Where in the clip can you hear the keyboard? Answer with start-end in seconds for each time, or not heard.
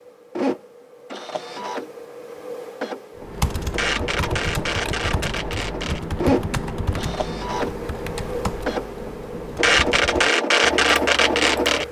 3.1-11.8.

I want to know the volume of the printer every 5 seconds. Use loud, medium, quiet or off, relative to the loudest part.
medium, medium, loud.